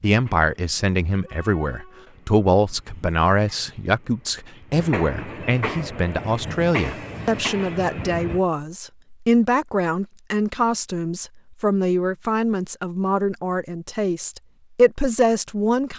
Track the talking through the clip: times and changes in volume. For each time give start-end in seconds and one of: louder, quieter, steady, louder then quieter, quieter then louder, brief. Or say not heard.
0.0-15.9 steady.